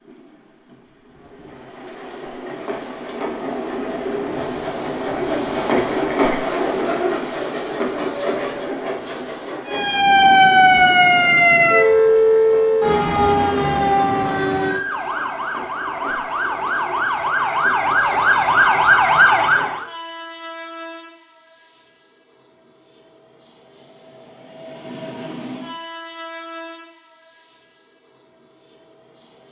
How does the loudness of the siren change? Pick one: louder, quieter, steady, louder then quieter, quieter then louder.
quieter then louder.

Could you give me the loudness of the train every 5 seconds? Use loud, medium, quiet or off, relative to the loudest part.
medium, loud, quiet, quiet, quiet, quiet.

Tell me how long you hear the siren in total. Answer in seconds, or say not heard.
10 s.